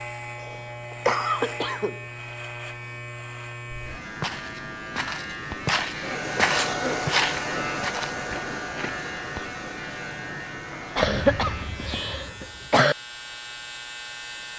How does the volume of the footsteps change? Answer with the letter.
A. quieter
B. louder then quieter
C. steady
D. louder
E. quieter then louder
B.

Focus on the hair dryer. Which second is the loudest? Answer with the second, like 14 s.
7 s.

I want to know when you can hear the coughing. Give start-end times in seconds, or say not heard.
0.3-2.0, 6.0-7.7, 10.9-12.9.